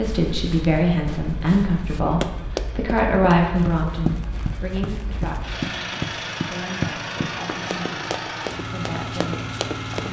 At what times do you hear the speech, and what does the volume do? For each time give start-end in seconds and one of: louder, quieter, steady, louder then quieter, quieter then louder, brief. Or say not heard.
0.0-10.0 quieter.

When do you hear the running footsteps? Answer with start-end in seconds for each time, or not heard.
0.0-10.0.